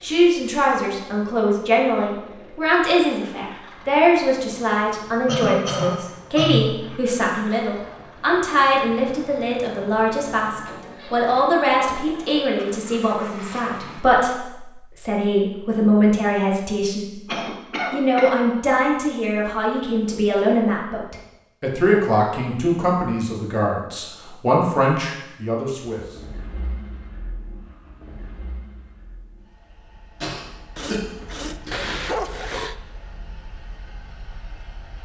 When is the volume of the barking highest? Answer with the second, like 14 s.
32 s.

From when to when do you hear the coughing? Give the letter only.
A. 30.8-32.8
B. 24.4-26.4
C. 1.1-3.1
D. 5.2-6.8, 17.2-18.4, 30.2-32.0
D.